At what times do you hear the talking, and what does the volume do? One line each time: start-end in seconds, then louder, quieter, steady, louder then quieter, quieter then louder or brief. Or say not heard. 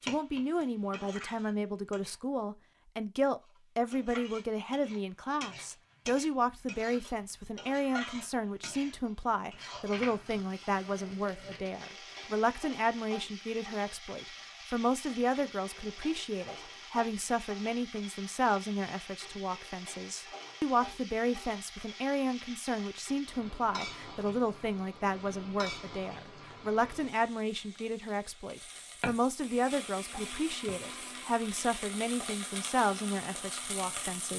0.0-34.3 steady.